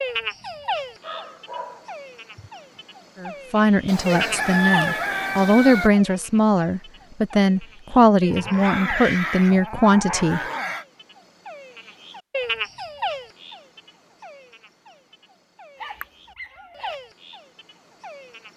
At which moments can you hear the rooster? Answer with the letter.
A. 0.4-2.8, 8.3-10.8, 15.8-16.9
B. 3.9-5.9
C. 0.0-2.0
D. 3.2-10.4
B.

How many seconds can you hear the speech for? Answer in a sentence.
You can hear the speech for 7 seconds altogether.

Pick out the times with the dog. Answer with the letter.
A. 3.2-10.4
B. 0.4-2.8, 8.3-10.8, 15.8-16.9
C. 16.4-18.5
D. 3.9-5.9
B.